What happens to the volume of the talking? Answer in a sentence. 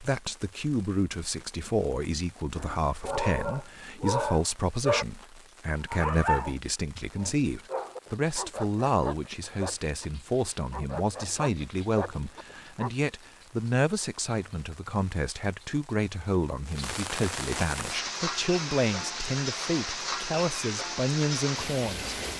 The volume of the talking stays about the same.